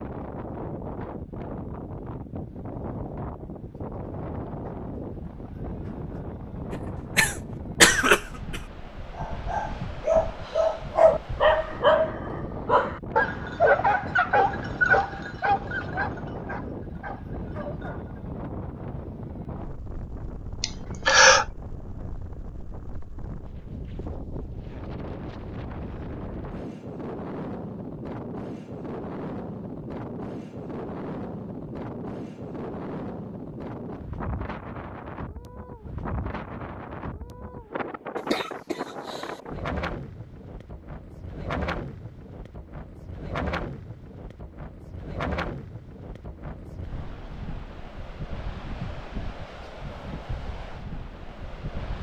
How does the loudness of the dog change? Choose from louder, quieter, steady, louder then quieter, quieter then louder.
quieter.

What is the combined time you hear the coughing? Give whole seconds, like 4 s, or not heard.
4 s.